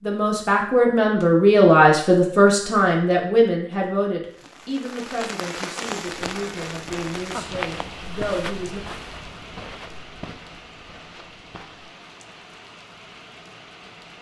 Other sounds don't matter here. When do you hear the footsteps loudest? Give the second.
8 s.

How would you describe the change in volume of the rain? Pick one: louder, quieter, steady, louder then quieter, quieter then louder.
quieter.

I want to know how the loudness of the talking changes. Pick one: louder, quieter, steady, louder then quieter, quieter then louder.
quieter.